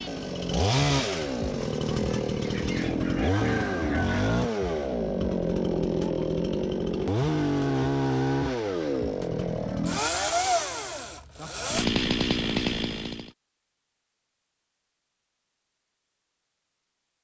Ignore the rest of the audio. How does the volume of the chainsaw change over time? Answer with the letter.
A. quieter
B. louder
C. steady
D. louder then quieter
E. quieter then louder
C.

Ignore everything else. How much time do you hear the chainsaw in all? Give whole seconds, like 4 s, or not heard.
13 s.